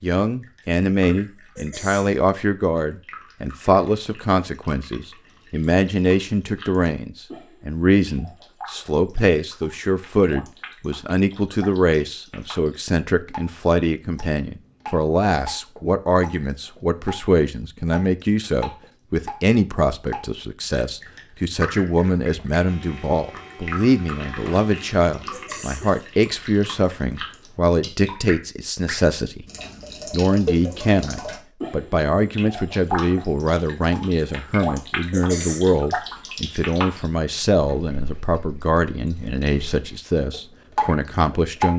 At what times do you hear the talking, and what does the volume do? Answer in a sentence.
The talking can be heard from 0.0 to 29.4 s, at a steady volume; and from 30.1 to 41.7 s, at a steady volume.